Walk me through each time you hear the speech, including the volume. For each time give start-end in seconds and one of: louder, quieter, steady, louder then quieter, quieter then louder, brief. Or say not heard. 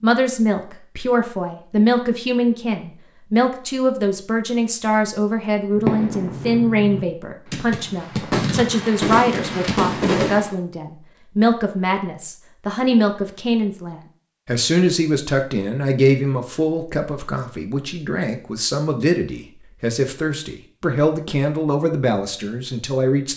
0.0-23.3 steady.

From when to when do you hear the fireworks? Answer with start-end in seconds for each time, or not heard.
5.8-10.5.